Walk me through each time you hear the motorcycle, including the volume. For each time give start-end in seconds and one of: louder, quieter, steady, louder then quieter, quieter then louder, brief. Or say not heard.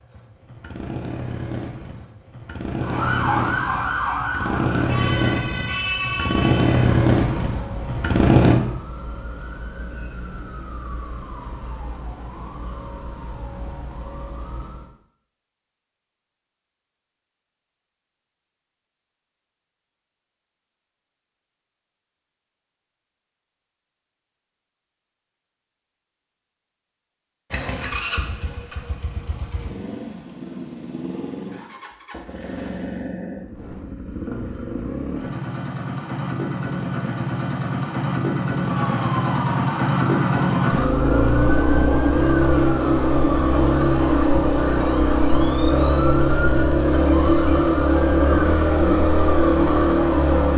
0.0-8.6 louder
27.5-50.5 louder.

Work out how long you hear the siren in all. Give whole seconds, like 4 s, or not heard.
24 s.